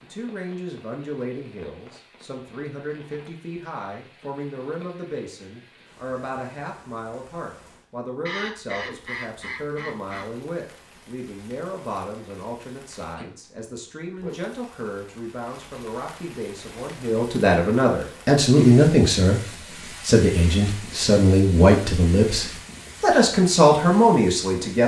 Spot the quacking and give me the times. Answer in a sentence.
You can hear the quacking from 8.2 to 10.2 s.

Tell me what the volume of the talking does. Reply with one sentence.
The loudness of the talking goes up.